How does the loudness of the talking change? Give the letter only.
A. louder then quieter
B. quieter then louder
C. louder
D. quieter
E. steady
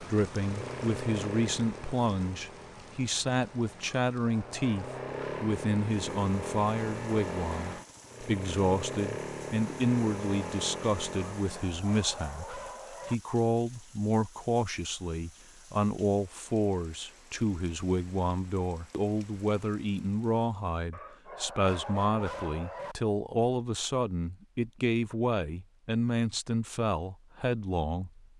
E.